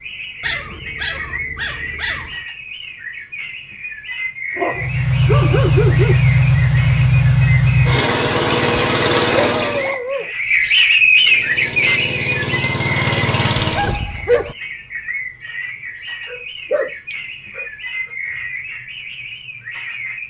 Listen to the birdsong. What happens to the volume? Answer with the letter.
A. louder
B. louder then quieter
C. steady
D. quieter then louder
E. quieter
B.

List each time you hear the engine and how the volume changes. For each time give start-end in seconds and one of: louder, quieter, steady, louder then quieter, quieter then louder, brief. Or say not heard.
4.7-9.9 steady
11.1-14.0 brief.